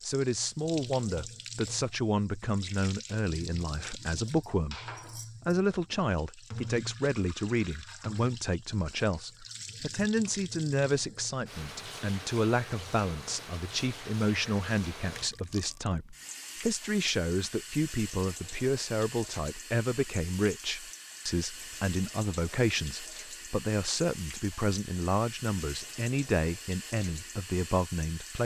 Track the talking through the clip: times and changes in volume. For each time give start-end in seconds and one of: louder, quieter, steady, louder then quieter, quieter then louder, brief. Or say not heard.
0.0-4.8 steady
5.5-28.4 steady.